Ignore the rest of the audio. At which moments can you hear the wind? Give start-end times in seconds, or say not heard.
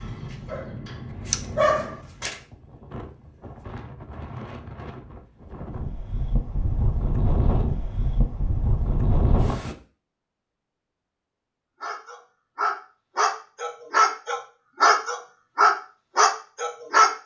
0.0-9.8.